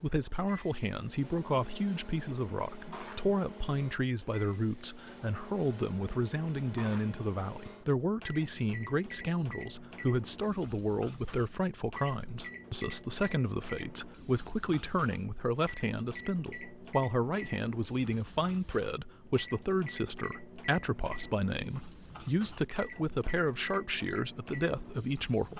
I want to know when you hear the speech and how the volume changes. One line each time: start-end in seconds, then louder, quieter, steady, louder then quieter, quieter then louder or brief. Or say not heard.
0.0-25.5 steady.